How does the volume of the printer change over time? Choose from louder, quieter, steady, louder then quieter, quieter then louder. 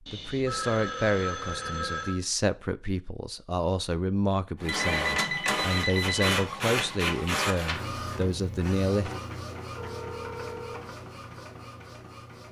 quieter.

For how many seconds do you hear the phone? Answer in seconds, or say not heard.
5 s.